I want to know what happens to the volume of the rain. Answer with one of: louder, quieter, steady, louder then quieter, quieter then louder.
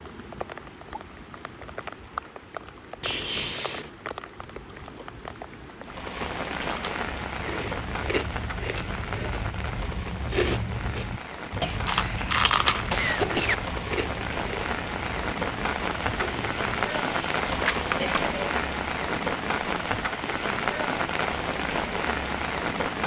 louder.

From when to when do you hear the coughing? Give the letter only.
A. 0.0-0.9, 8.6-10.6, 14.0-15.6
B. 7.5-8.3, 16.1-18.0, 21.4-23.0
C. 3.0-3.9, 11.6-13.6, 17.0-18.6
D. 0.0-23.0
C.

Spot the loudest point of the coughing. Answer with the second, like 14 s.
13 s.